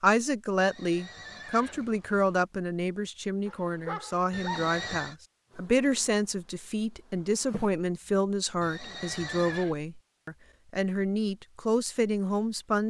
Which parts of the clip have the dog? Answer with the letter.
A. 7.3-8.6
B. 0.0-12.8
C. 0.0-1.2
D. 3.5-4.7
D.